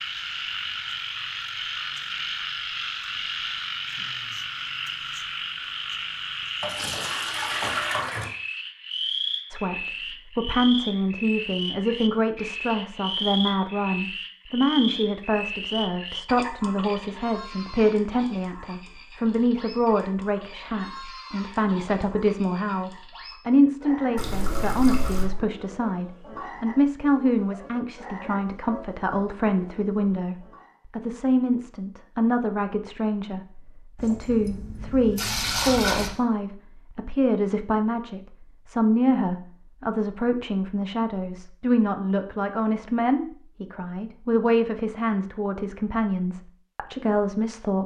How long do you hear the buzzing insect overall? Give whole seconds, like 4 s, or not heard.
not heard.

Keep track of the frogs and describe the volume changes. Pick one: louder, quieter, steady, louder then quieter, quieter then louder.
quieter.